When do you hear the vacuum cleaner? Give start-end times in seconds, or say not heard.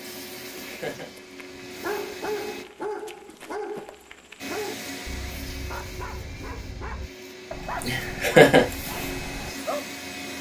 0.0-2.6, 4.3-10.3.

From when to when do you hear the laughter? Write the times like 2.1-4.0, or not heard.
0.2-1.1, 7.8-8.7.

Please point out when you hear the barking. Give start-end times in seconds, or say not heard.
0.5-9.8.